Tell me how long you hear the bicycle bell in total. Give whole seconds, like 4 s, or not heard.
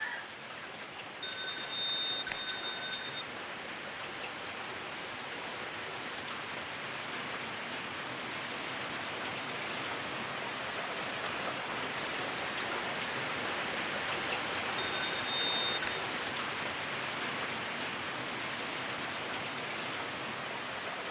3 s.